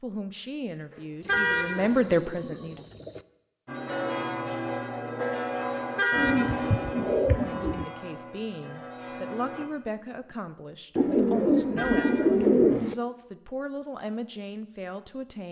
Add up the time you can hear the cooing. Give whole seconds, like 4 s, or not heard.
6 s.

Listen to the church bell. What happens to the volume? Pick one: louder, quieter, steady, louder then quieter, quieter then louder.
quieter.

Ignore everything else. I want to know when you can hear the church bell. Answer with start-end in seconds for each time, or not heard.
3.6-9.7.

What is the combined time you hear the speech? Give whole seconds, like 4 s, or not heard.
11 s.